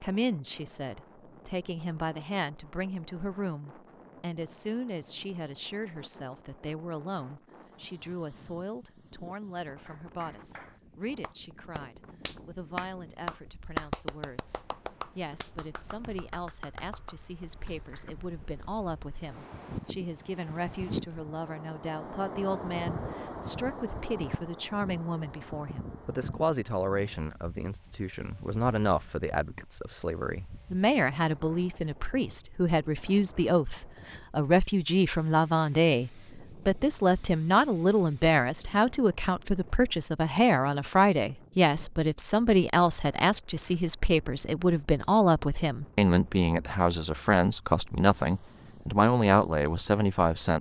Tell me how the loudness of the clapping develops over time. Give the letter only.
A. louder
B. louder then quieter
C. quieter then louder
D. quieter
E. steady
B.